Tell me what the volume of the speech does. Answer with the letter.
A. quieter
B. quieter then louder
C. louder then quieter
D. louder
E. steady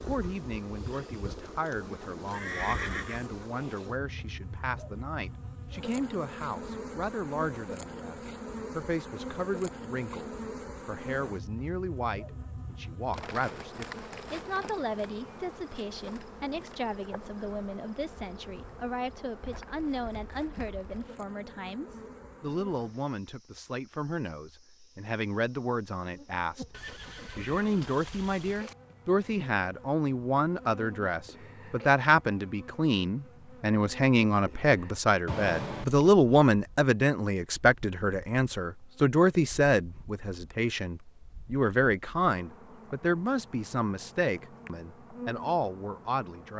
D.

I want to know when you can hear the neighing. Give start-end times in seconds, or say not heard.
2.3-3.3, 26.7-28.8, 35.2-36.1.